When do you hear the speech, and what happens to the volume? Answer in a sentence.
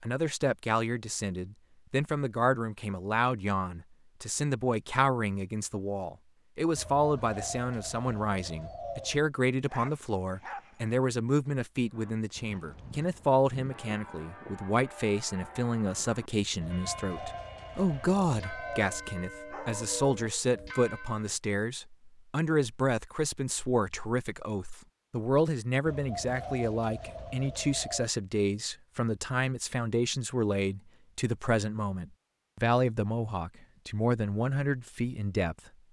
You can hear the speech from 0.0 to 35.5 s, at a steady volume.